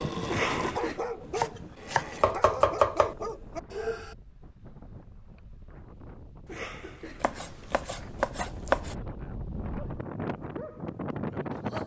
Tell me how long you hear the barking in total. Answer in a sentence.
You can hear the barking for 7 seconds altogether.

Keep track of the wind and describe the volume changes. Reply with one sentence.
The volume of the wind goes up.